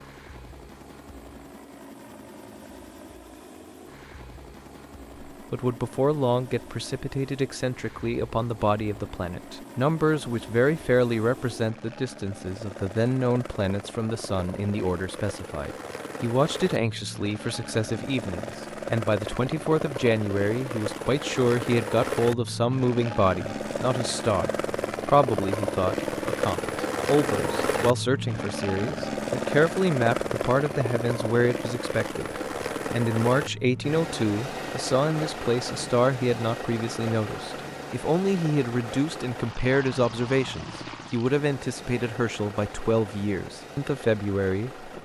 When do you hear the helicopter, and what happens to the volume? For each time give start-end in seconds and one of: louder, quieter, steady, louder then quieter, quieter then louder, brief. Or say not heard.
0.0-45.0 louder then quieter.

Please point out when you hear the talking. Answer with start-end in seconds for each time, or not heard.
5.3-44.9.